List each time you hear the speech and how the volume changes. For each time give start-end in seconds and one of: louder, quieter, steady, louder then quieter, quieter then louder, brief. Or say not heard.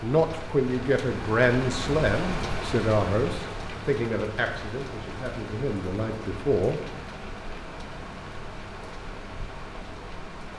0.0-6.8 quieter.